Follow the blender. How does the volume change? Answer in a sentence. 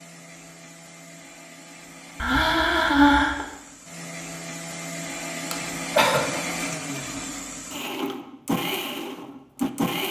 The loudness of the blender goes up.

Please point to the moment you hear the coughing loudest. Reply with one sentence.
The loudest moment of the coughing is at 3 seconds.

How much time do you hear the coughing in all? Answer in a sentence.
You can hear the coughing for 2 seconds altogether.